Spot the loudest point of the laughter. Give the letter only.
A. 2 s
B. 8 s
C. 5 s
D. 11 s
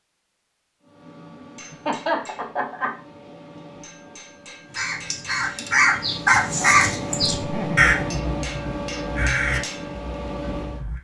A.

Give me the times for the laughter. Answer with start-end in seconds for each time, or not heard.
1.7-3.0, 7.3-8.8.